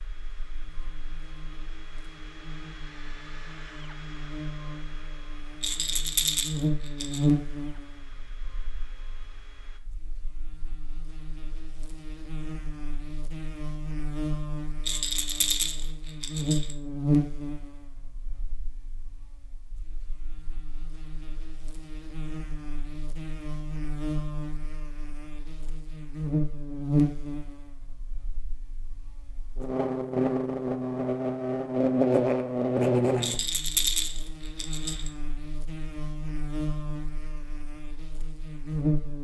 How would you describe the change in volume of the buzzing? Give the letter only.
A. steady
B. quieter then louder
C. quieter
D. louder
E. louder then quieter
B.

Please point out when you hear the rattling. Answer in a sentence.
You can hear the rattling from 5.6 to 7.2 s, from 14.8 to 16.8 s and from 33.2 to 35.1 s.